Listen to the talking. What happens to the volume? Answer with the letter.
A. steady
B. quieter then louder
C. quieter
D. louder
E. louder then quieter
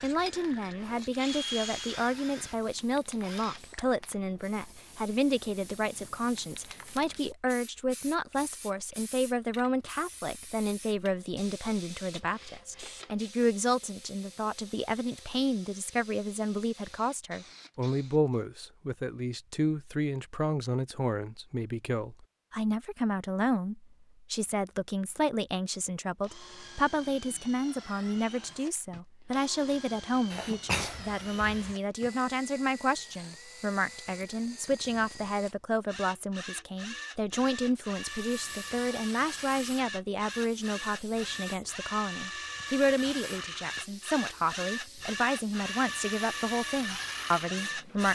A.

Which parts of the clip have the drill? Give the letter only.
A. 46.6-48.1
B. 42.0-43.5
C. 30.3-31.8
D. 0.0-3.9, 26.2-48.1
D.